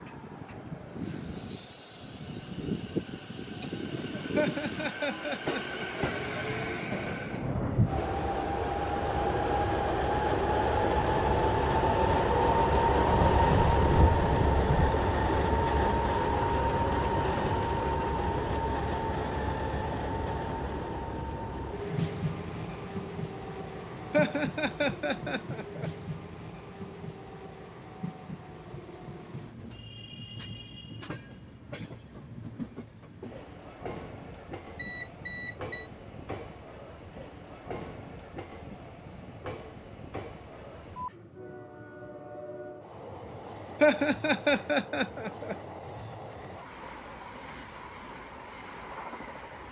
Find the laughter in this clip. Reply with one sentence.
You can hear the laughter from 4.3 to 6.0 s, from 24.1 to 25.9 s and from 43.8 to 45.5 s.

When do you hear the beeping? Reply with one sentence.
You can hear the beeping from 34.8 to 35.9 s.